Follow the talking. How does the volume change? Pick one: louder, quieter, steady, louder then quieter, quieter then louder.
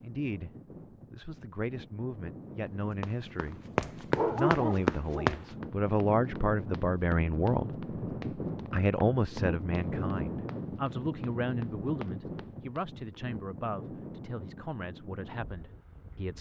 louder then quieter.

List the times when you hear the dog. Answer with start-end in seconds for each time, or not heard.
4.1-5.5.